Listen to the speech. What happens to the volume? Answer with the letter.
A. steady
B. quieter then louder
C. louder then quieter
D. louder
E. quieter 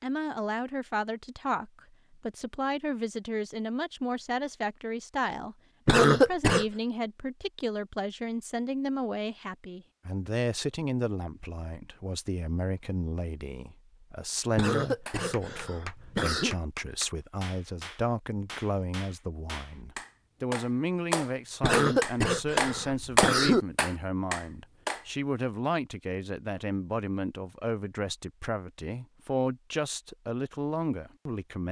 A.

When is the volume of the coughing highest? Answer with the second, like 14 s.
6 s.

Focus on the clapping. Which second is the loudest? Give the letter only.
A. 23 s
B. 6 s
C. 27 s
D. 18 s
A.